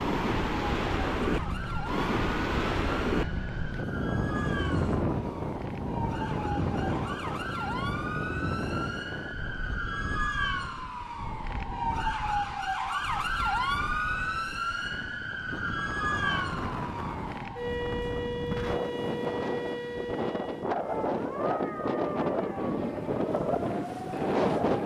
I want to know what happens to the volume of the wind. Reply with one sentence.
The loudness of the wind goes down, then up.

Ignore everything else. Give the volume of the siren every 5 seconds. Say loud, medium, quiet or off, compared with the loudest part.
medium, medium, loud, loud, medium.